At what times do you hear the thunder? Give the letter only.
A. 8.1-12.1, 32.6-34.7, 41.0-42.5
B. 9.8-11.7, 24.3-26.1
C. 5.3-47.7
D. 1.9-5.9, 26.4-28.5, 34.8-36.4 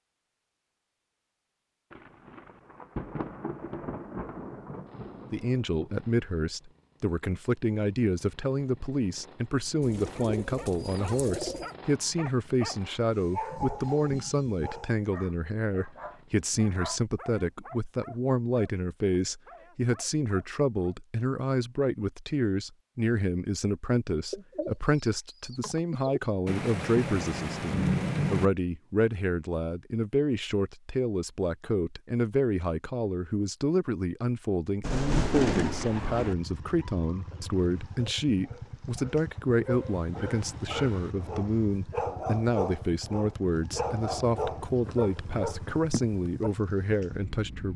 D.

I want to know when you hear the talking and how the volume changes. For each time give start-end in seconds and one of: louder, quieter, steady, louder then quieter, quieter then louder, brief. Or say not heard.
5.3-47.7 steady.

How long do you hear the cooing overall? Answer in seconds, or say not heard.
4 s.